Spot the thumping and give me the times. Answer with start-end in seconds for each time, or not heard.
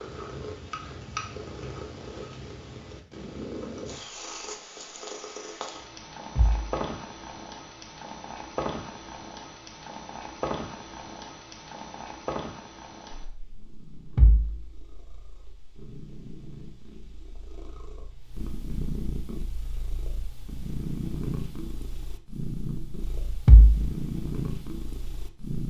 6.3-6.8, 14.2-14.6, 23.4-23.9.